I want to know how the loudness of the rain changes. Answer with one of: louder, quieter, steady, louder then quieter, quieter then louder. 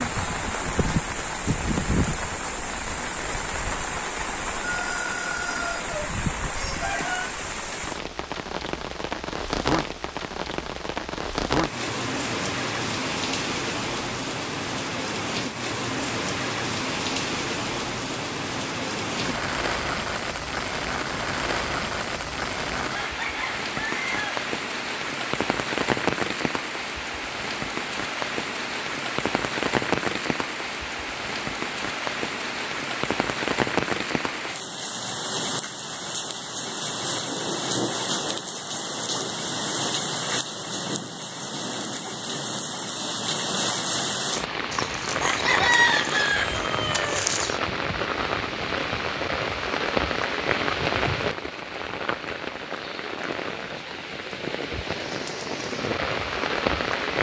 steady.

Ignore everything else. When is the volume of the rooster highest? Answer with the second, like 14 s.
46 s.